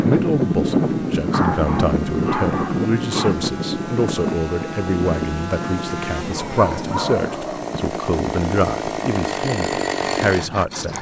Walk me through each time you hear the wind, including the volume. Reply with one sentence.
You can hear the wind from 0.0 to 10.9 s, getting quieter.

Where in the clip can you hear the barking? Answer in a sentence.
The barking can be heard from 1.3 to 3.4 s and from 6.3 to 7.6 s.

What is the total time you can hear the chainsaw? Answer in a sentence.
You can hear the chainsaw for 11 seconds altogether.